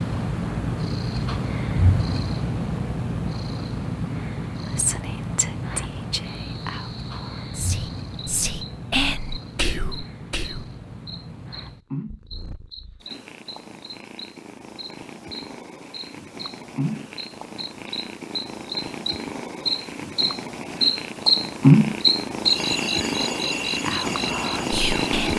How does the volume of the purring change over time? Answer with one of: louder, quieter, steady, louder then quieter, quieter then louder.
quieter then louder.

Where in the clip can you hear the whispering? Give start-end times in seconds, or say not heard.
4.7-10.7, 23.9-25.3.